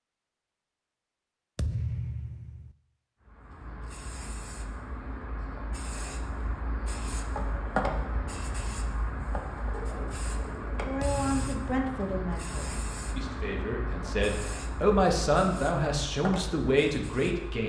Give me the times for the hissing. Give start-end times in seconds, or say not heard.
3.2-17.6.